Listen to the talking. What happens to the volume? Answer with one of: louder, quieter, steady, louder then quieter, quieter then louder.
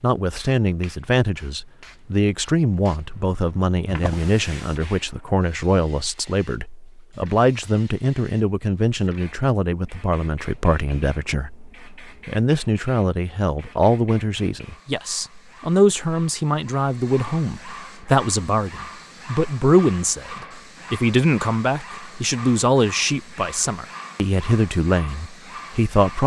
steady.